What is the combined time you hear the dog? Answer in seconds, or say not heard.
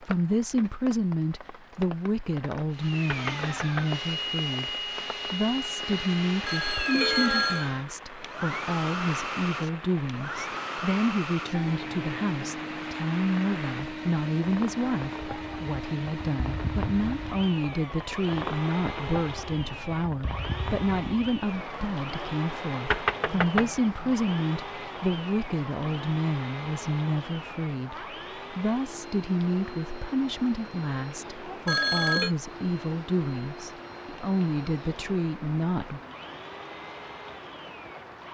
not heard.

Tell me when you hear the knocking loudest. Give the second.
23 s.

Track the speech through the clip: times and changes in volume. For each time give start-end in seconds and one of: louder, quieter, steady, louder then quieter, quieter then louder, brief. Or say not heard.
0.0-36.0 steady.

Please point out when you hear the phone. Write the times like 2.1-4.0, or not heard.
6.5-7.7, 31.6-32.4.